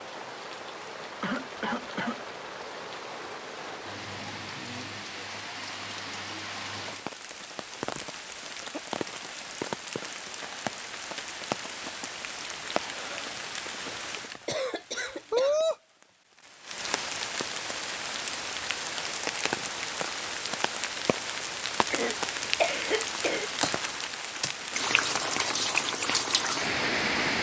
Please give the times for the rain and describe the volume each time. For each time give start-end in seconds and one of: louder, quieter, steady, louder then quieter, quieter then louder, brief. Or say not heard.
0.0-27.3 louder.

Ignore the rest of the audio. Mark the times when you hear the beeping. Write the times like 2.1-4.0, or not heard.
not heard.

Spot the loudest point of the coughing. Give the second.
23 s.